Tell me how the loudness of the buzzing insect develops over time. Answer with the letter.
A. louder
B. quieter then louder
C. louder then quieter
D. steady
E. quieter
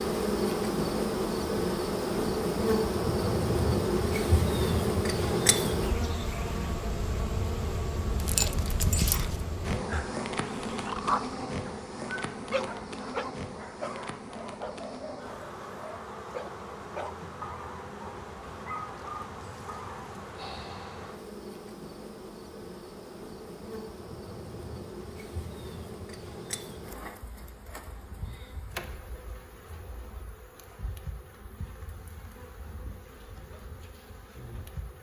E.